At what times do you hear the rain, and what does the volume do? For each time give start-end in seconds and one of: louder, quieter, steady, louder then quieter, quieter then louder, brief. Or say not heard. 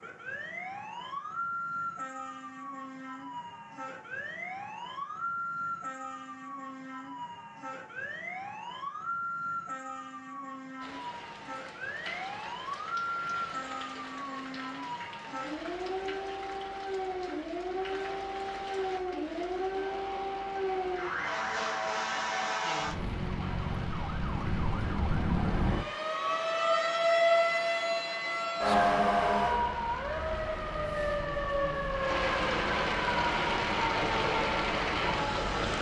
10.8-35.7 louder.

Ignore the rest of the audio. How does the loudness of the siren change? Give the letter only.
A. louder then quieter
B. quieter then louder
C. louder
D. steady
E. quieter
C.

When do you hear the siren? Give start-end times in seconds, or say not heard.
0.0-35.7.